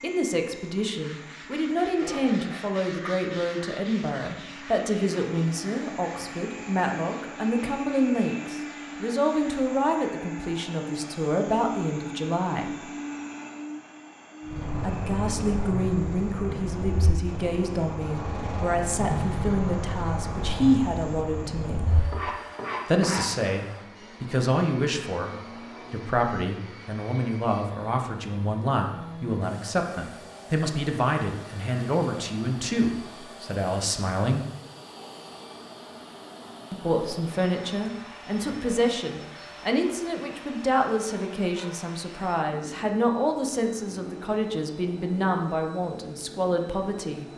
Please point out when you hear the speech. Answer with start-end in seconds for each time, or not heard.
0.0-12.8, 14.8-22.1, 22.9-34.5, 36.7-47.2.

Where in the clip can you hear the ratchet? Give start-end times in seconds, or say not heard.
not heard.